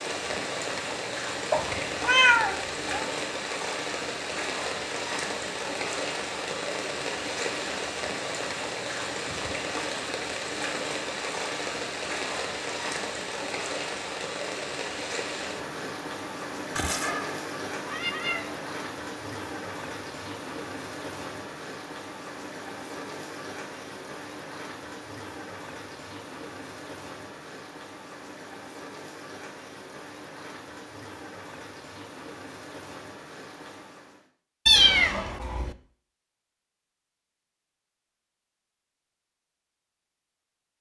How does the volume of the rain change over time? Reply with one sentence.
The loudness of the rain goes down.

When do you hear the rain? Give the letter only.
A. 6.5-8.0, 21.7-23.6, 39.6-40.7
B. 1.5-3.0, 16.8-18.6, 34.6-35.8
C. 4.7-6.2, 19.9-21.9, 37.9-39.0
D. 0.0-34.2
D.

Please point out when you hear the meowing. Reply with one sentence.
The meowing can be heard from 1.5 to 3.0 s, from 16.8 to 18.6 s and from 34.6 to 35.8 s.